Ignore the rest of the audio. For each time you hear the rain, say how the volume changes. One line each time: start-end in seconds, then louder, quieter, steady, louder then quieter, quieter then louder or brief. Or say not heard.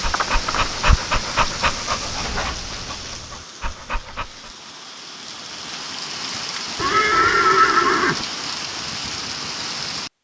0.0-10.1 quieter then louder.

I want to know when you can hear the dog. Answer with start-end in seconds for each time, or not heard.
0.0-4.5.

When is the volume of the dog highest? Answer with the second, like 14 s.
1 s.